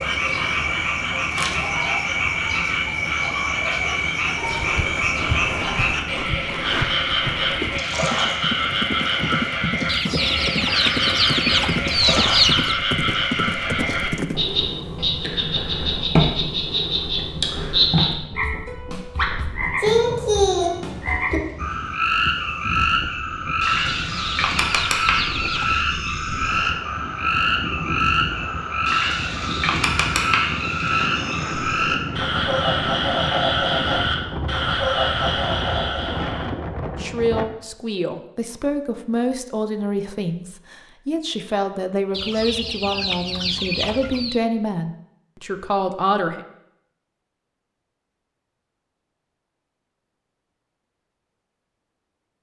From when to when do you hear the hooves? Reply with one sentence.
You can hear the hooves from 4.5 to 14.6 s.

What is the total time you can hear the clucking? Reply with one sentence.
The clucking can be heard for 7 seconds in total.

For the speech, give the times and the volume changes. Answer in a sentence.
You can hear the speech from 37.0 to 46.4 s, at a steady volume.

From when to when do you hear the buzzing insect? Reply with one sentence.
The buzzing insect can't be heard in this clip.